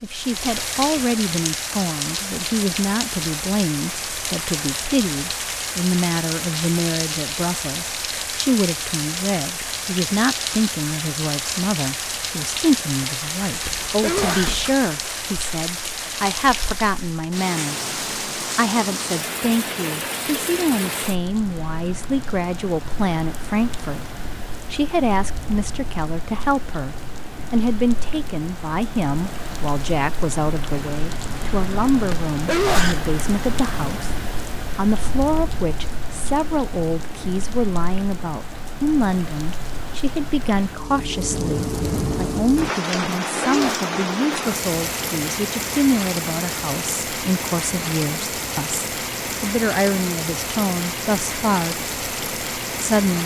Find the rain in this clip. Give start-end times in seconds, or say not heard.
0.0-53.2.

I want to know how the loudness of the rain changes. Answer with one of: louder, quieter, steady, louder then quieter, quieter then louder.
quieter then louder.